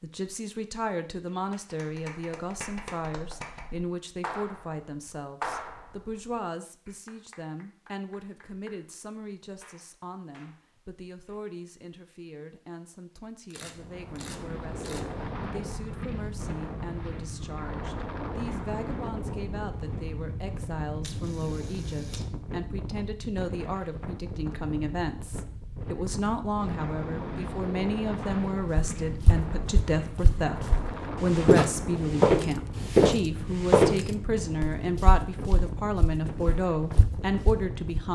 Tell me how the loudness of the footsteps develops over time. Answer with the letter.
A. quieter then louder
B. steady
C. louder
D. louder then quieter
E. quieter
D.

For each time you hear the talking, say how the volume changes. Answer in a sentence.
You can hear the talking from 0.0 to 38.1 s, getting quieter then louder.